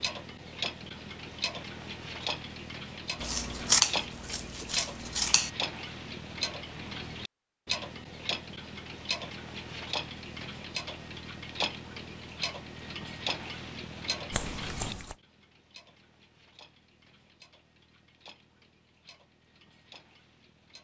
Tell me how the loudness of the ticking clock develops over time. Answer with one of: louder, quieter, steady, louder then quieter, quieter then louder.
quieter.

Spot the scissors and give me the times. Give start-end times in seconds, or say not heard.
3.2-5.5, 14.3-15.2.